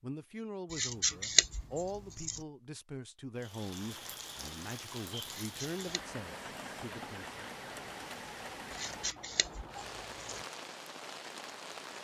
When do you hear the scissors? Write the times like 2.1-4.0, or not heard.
0.7-2.4, 5.2-6.0, 8.7-10.4.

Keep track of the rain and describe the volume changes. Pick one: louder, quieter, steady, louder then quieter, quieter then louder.
steady.